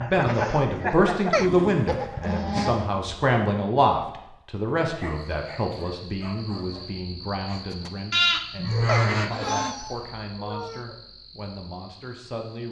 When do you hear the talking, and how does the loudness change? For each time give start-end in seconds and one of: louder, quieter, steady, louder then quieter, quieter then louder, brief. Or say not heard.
0.0-12.6 quieter.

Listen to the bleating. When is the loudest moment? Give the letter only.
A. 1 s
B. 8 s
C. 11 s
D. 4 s
B.